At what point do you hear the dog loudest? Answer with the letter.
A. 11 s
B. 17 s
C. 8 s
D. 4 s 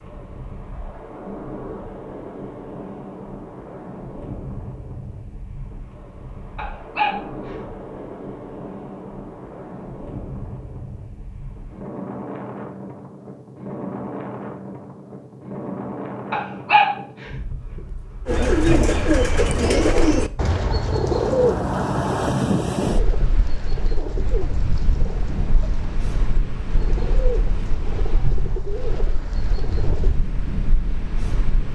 B.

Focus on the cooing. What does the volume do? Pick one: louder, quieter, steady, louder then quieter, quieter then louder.
quieter.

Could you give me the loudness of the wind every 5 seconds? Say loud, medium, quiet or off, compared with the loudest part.
medium, medium, medium, medium, loud, medium, medium.